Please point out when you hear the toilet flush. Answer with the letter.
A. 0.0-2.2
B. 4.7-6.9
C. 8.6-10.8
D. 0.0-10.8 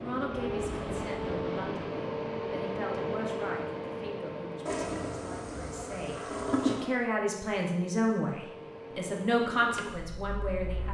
B.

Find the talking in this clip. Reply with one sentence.
The talking can be heard from 0.0 to 10.8 s.